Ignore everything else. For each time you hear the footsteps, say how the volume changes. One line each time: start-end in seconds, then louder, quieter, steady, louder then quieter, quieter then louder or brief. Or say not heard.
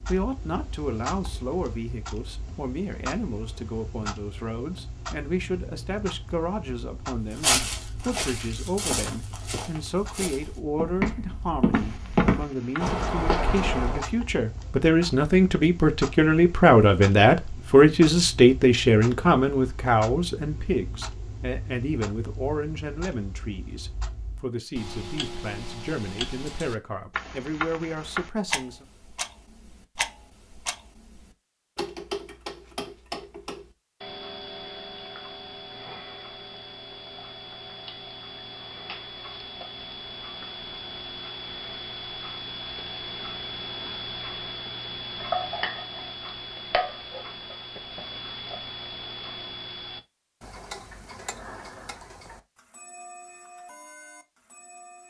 7.3-14.1 louder.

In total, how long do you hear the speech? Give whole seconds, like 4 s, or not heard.
29 s.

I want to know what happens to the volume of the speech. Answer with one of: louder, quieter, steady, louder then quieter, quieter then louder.
louder then quieter.